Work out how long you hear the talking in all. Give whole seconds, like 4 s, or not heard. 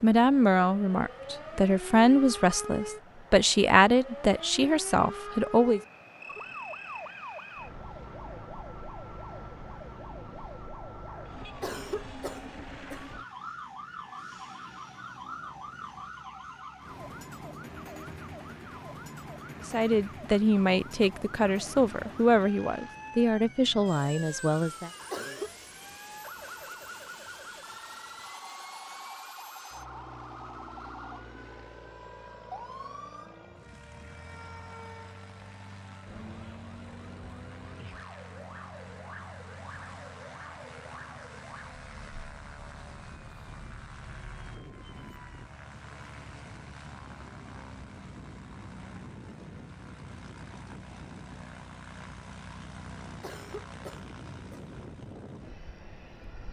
11 s.